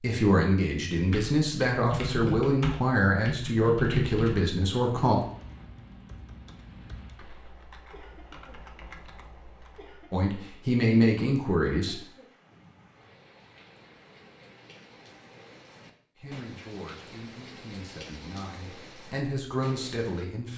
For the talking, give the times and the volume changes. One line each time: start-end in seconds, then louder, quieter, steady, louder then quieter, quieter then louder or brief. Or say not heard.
0.0-5.2 steady
10.1-12.0 brief
16.1-20.5 louder.